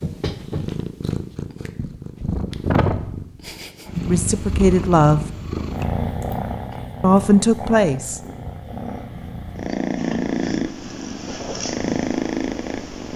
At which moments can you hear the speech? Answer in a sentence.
You can hear the speech from 4.0 to 5.2 s and from 7.0 to 8.2 s.